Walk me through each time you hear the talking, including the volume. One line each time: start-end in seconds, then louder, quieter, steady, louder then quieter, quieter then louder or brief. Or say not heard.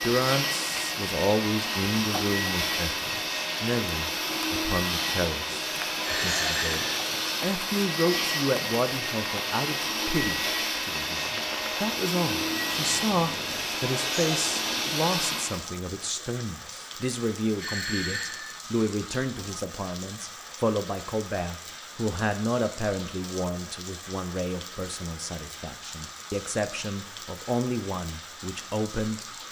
0.0-29.2 steady.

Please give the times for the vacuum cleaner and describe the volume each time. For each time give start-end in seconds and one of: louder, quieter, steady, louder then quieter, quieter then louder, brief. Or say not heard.
0.0-15.6 steady.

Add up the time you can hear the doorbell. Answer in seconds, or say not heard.
2 s.